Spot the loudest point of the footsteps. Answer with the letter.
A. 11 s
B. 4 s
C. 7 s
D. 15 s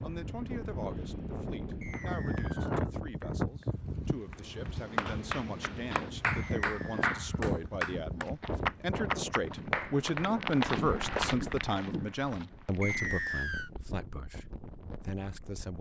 A.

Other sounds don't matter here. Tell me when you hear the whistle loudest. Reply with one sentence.
The loudest moment of the whistle is at 13 seconds.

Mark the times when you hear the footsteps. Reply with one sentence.
The footsteps can be heard from 5.8 to 13.4 s.